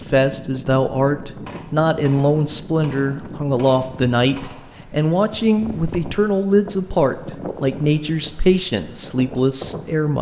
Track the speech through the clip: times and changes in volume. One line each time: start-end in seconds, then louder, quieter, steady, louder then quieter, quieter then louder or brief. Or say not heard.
0.0-10.1 steady.